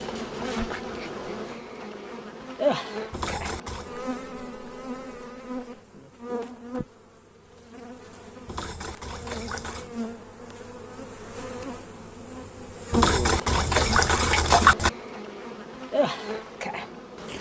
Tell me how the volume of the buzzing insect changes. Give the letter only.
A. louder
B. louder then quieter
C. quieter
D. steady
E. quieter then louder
E.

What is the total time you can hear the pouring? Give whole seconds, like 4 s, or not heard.
4 s.